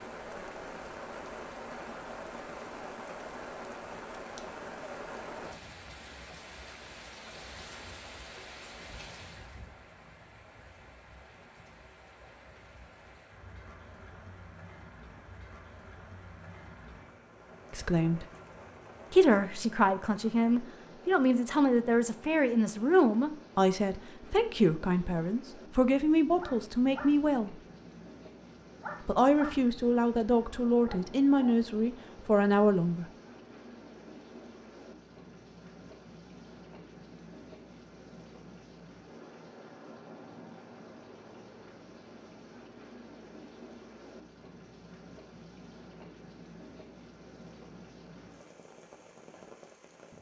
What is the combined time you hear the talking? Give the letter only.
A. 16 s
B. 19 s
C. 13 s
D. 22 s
C.